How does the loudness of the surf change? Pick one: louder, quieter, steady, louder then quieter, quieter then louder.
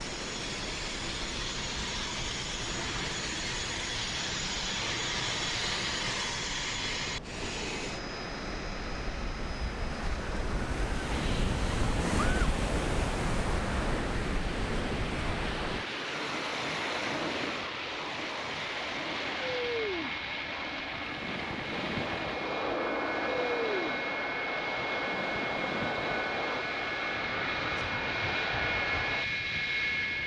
louder then quieter.